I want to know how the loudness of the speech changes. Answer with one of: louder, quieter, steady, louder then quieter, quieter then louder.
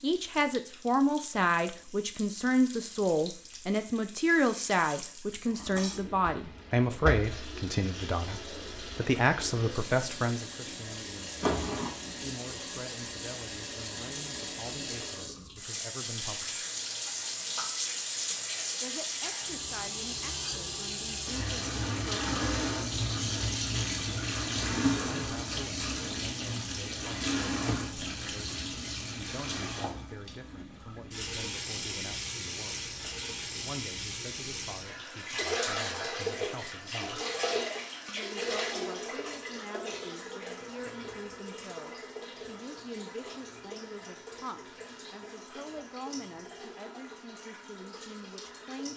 quieter.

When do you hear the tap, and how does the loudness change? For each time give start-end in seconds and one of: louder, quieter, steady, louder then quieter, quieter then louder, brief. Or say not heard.
0.0-48.9 louder then quieter.